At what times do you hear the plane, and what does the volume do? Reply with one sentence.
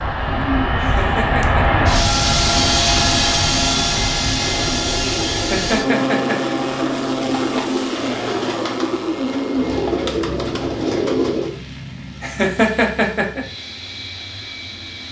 The plane can be heard from 0.0 to 15.0 s, getting quieter.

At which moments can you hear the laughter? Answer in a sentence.
You can hear the laughter from 0.8 to 1.6 s, from 5.3 to 6.5 s and from 12.2 to 13.4 s.